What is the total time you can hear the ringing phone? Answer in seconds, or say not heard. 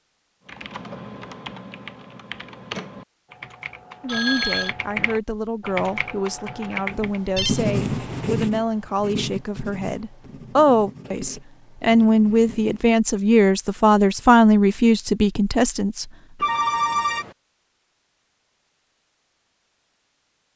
3 s.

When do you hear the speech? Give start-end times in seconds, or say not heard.
4.0-16.1.